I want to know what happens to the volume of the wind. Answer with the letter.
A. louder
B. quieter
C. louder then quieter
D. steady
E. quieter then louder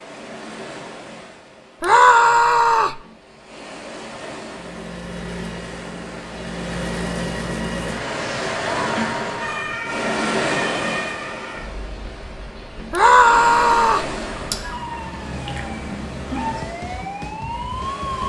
C.